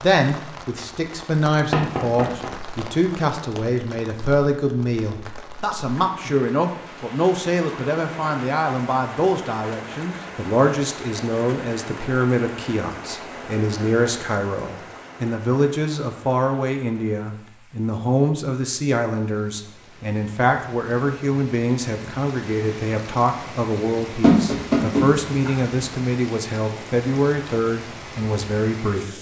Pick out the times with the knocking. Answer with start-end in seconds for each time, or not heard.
1.7-2.5, 24.2-25.6.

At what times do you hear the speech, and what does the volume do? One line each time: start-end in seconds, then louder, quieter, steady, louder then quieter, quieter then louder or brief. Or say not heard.
0.0-29.1 steady.